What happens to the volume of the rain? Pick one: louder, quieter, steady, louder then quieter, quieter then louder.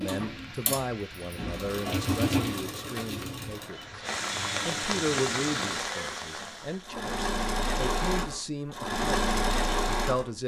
louder.